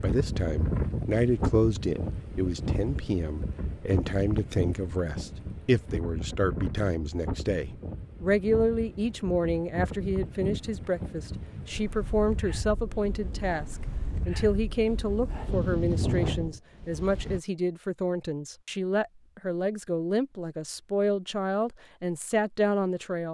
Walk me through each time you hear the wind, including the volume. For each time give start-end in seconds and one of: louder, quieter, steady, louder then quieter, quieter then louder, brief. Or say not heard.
0.0-17.4 quieter then louder.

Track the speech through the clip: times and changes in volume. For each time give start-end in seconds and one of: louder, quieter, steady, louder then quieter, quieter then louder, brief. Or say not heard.
0.0-23.2 steady.